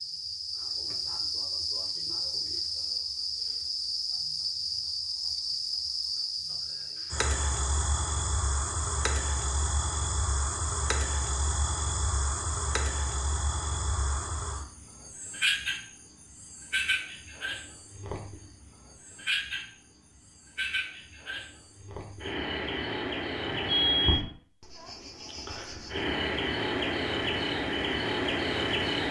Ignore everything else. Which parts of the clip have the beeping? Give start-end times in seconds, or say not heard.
23.4-24.3.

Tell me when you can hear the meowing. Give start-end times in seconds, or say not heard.
not heard.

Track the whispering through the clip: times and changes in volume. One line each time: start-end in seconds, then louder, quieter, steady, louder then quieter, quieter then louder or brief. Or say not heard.
not heard.